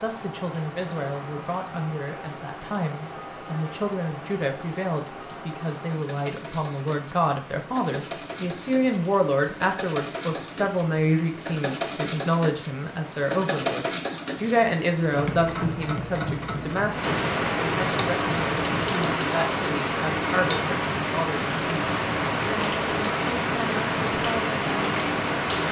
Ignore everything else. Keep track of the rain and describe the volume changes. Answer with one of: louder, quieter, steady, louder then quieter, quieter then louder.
louder.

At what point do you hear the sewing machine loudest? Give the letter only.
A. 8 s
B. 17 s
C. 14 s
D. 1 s
C.